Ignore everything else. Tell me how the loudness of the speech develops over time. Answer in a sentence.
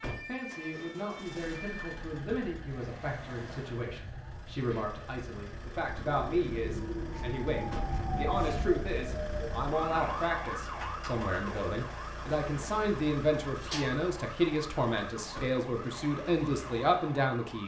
The volume of the speech goes up.